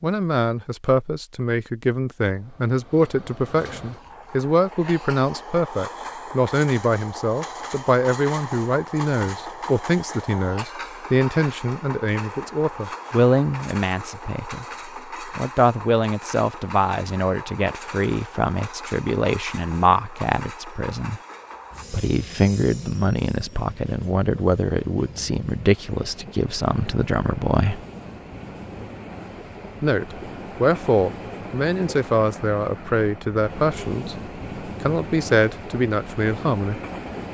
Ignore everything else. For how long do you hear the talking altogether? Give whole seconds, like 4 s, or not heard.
34 s.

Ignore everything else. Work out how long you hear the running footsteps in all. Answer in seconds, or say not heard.
not heard.